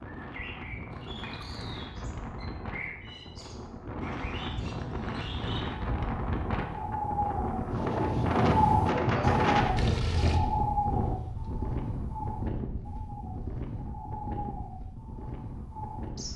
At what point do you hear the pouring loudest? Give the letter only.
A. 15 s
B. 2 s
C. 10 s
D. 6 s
C.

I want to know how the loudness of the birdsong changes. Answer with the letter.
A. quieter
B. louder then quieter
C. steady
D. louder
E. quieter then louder
B.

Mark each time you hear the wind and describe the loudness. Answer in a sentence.
You can hear the wind from 0.0 to 16.3 s, getting louder then quieter.